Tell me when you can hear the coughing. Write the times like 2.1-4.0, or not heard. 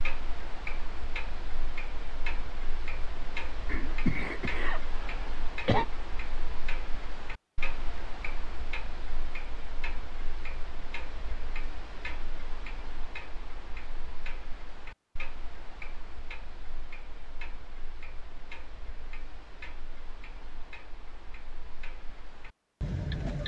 3.6-5.8.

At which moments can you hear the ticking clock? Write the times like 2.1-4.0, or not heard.
0.0-23.4.